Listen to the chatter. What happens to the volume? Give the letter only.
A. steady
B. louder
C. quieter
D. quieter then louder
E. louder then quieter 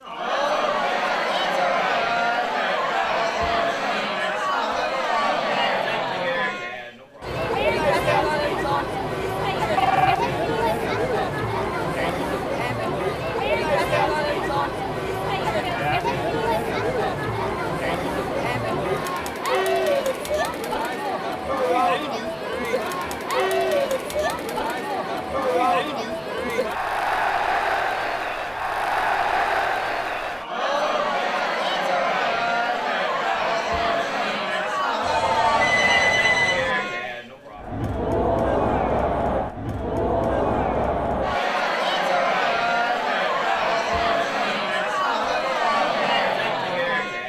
A.